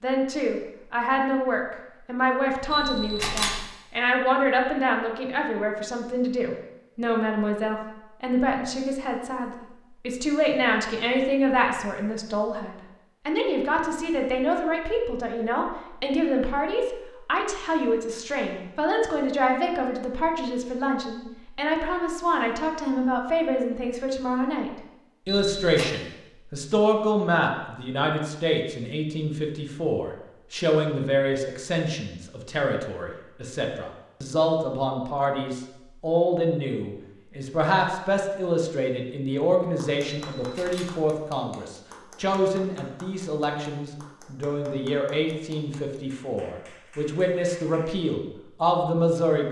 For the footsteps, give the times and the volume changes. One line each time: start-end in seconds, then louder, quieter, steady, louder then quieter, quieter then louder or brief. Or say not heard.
not heard.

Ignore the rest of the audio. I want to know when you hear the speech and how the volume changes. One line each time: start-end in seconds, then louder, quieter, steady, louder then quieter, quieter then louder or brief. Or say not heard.
0.0-49.4 steady.